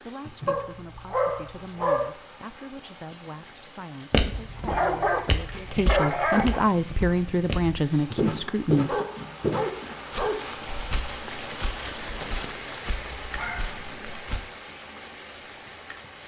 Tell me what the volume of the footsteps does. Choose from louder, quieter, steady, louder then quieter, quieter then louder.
louder then quieter.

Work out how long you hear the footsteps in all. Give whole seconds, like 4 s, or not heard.
10 s.